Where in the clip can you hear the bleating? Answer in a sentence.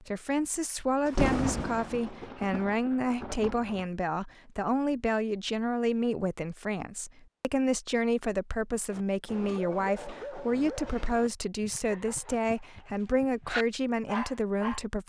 The bleating can't be heard in this clip.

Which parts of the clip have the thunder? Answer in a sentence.
The thunder can be heard from 1.1 to 3.9 s.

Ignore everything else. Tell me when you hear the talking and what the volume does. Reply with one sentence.
The talking can be heard from 0.0 to 15.0 s, at a steady volume.